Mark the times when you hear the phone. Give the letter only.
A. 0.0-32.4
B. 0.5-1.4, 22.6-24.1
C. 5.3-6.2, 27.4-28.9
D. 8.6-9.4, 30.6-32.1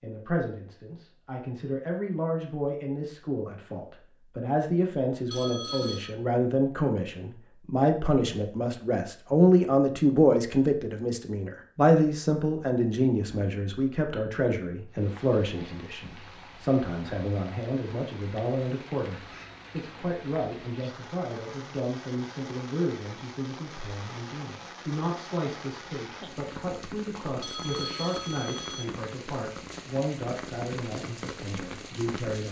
C.